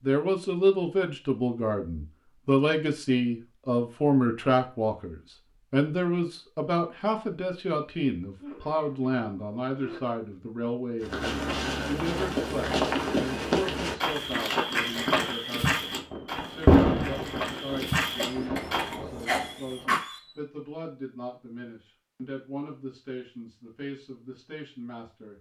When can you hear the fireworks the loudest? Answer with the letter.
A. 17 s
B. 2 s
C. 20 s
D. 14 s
A.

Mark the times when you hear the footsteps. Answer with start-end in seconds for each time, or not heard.
11.0-18.9.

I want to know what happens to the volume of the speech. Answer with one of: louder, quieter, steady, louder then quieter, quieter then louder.
quieter.